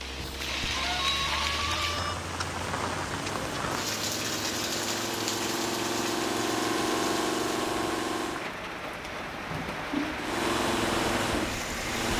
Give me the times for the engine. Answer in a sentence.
The engine can be heard from 0.0 to 8.6 s and from 10.2 to 12.1 s.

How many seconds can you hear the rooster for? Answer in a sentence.
You can hear the rooster for 2 seconds altogether.